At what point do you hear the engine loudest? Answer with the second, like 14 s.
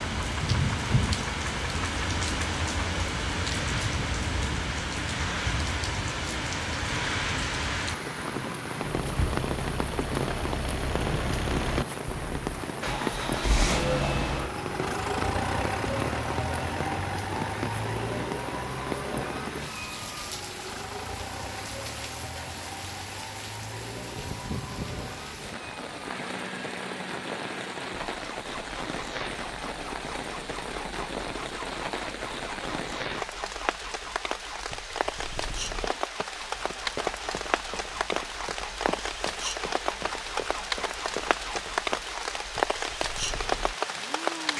14 s.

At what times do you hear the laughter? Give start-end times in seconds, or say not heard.
not heard.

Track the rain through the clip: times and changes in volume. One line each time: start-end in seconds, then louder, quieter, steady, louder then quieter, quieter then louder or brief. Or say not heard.
0.0-44.5 quieter then louder.